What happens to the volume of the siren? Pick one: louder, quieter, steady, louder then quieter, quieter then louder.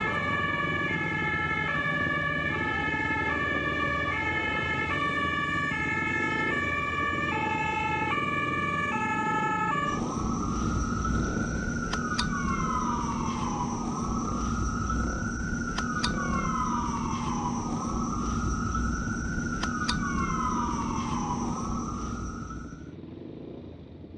steady.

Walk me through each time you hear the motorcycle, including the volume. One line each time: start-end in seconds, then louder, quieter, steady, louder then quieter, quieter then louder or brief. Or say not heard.
0.0-24.1 quieter.